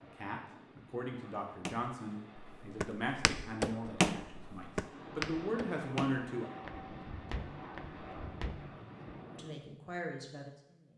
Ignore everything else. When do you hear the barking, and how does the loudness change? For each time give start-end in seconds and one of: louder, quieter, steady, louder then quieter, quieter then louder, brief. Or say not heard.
not heard.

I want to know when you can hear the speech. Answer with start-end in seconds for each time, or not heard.
0.0-6.5, 9.3-10.9.